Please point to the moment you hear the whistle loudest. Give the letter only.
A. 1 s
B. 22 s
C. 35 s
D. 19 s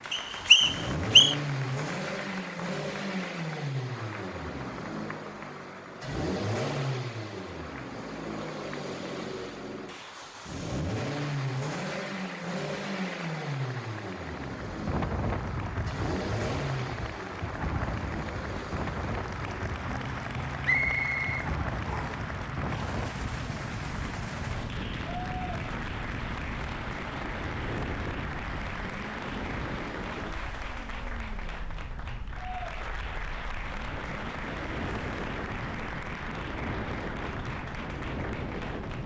A.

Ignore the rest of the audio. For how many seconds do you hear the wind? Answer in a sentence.
You can hear the wind for 24 seconds altogether.